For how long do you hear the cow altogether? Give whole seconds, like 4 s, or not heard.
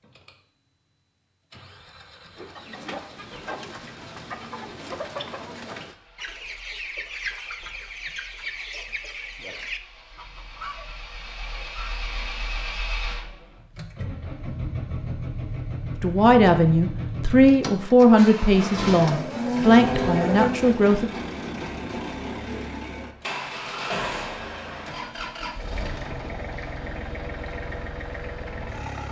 2 s.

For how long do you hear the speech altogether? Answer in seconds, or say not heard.
5 s.